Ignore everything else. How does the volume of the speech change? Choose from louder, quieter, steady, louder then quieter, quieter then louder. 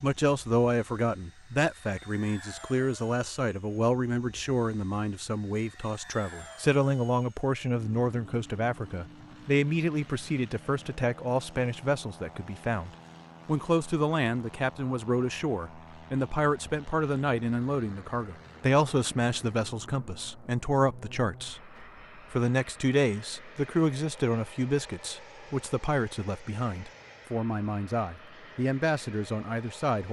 steady.